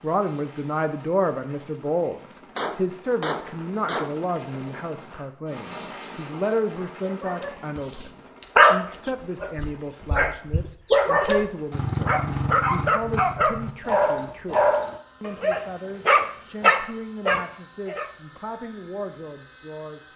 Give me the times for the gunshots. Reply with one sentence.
You can hear the gunshots from 2.5 to 4.2 s.